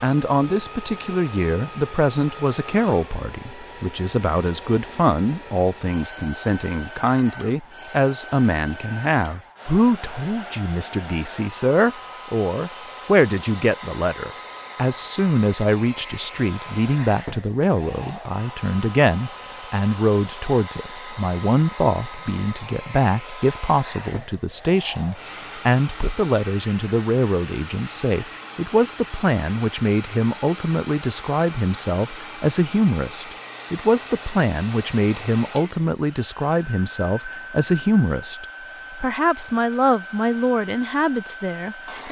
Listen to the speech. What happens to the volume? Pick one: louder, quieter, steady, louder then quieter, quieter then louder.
steady.